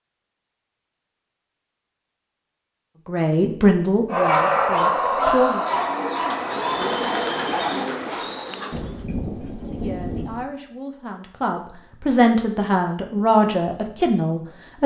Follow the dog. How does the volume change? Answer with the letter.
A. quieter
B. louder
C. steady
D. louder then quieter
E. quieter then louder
A.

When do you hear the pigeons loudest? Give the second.
7 s.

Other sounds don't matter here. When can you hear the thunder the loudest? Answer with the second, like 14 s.
10 s.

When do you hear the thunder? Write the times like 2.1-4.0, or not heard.
8.7-10.4.